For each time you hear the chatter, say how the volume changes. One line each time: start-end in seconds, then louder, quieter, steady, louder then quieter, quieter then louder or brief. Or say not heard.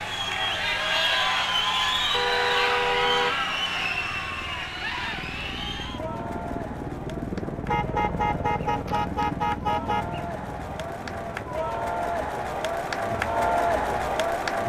0.0-14.6 quieter then louder.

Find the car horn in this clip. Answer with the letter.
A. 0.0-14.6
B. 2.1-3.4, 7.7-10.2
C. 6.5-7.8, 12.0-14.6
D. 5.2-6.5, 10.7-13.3
B.